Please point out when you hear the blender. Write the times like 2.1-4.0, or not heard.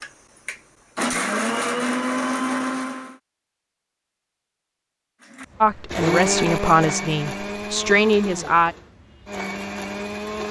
0.0-3.1, 5.3-10.4.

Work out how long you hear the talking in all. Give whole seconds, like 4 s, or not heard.
3 s.